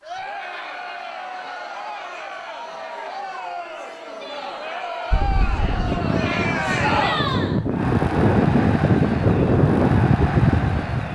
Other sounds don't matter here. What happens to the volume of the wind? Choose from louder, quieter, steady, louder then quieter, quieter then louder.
louder.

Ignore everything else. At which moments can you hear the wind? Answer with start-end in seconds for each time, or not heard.
5.1-11.1.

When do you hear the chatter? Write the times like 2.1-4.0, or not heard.
0.0-11.1.